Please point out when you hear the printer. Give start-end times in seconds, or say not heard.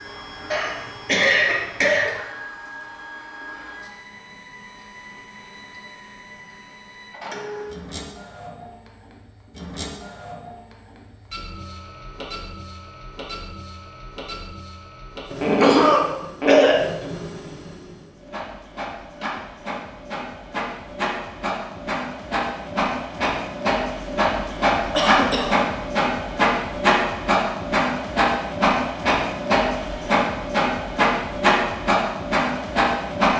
0.0-33.3.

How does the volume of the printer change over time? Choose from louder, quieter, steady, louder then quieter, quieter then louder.
louder.